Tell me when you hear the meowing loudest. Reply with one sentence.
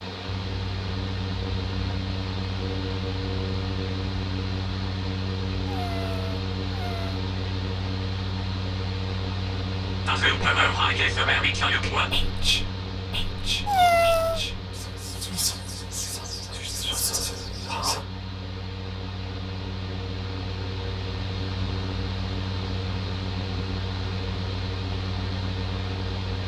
The loudest moment of the meowing is at 14 seconds.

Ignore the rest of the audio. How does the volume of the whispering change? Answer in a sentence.
The volume of the whispering goes down.